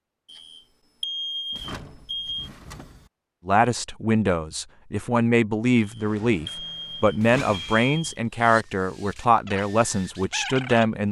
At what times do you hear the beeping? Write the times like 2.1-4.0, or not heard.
0.2-2.5, 5.8-8.1.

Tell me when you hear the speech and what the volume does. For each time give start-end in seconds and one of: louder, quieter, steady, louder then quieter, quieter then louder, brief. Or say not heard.
3.5-11.0 steady.